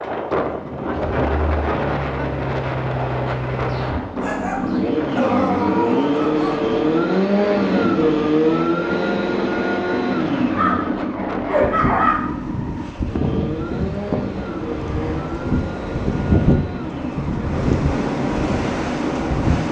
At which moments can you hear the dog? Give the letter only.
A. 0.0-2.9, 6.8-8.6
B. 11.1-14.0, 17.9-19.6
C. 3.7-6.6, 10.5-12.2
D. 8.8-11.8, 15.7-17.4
C.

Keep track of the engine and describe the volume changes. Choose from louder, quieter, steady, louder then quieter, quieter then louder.
louder then quieter.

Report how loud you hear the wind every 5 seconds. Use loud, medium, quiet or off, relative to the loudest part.
loud, medium, medium, loud.